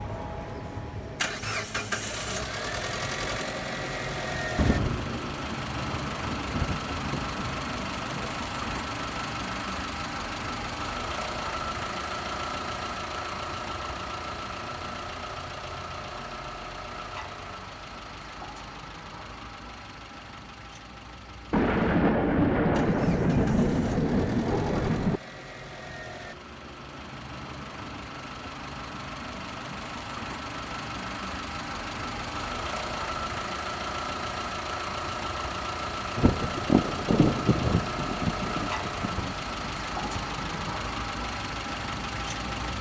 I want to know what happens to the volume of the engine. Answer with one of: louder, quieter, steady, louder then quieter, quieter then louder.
quieter then louder.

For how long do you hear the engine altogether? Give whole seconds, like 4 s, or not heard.
43 s.